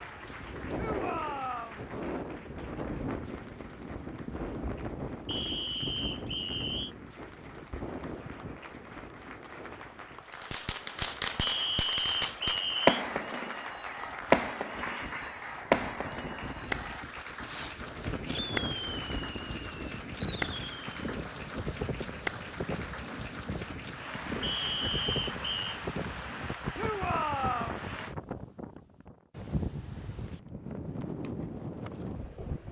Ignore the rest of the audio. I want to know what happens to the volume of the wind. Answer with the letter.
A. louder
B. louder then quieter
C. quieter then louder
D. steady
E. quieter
C.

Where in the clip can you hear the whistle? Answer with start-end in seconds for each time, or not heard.
5.2-7.0, 11.4-13.0, 24.4-25.7.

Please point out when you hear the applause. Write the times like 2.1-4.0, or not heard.
0.0-28.1.